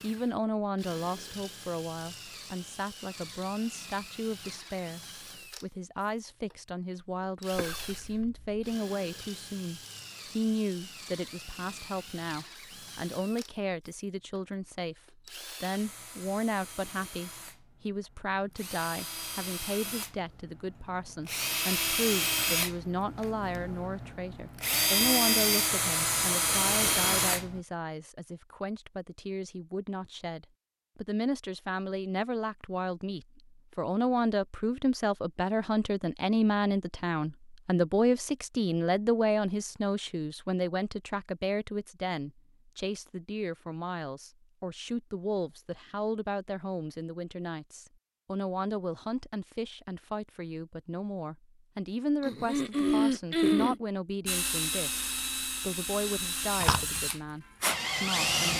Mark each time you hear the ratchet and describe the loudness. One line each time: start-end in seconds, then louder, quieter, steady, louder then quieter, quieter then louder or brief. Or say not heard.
not heard.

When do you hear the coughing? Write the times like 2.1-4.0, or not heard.
7.5-8.7, 52.2-53.8.